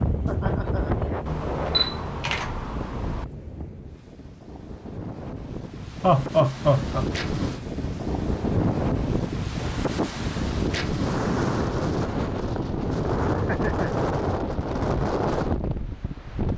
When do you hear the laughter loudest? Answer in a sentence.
The loudest moment of the laughter is at 6 seconds.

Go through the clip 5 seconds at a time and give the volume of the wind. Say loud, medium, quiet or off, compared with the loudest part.
medium, loud, loud, loud.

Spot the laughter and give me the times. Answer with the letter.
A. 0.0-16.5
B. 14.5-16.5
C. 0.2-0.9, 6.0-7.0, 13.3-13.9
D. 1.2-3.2
C.